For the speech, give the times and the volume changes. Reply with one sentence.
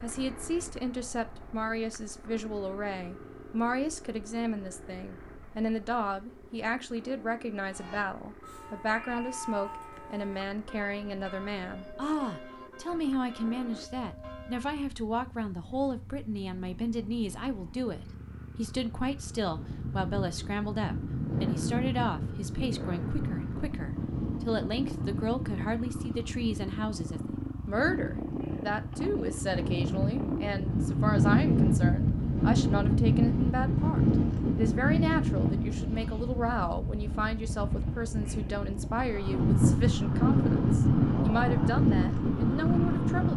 The speech can be heard from 0.0 to 43.3 s, at a steady volume.